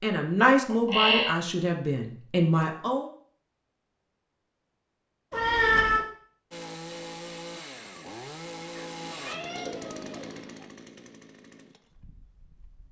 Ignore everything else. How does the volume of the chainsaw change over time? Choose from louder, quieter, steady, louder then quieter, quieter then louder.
quieter.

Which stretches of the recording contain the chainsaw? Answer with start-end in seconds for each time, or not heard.
6.5-12.8.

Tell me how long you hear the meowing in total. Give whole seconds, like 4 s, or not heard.
3 s.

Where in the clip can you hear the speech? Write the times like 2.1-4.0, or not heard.
0.0-3.0.